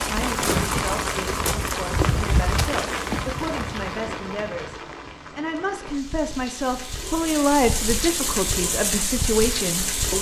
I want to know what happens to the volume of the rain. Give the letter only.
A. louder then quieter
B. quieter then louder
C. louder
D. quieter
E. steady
B.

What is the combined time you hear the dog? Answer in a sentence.
The dog can't be heard in this clip.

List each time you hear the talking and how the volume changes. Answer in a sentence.
The talking can be heard from 0.1 to 10.1 s, getting louder.